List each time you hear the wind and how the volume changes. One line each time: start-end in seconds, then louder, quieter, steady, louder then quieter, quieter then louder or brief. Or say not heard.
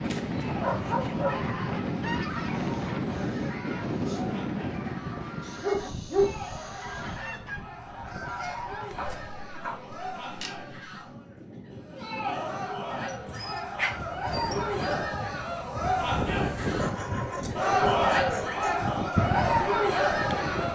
0.0-20.6 quieter then louder.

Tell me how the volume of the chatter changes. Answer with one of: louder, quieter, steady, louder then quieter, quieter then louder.
louder.